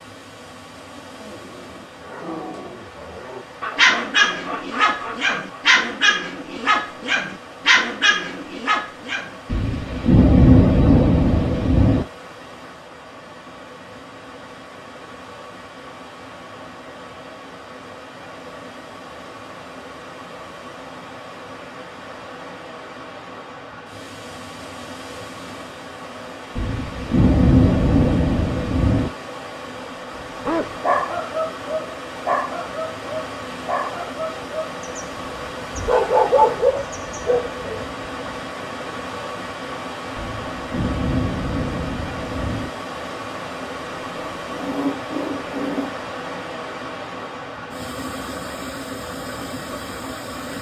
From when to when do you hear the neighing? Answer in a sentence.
The neighing can't be heard in this clip.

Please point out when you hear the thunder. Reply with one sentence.
You can hear the thunder from 9.5 to 12.1 s, from 26.6 to 29.1 s and from 40.1 to 42.7 s.